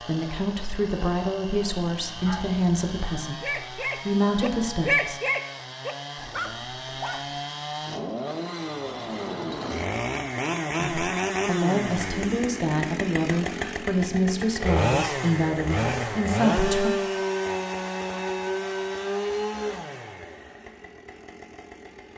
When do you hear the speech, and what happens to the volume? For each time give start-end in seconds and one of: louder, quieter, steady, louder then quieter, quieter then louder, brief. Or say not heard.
0.0-5.2 quieter then louder
10.8-16.9 steady.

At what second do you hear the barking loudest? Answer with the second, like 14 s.
5 s.